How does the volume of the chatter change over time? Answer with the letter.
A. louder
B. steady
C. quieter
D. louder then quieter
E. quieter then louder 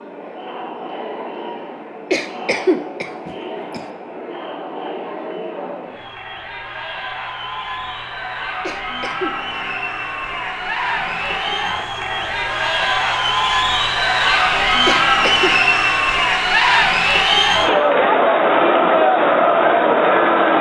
A.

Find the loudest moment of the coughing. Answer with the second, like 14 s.
3 s.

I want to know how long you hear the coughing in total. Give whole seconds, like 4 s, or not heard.
3 s.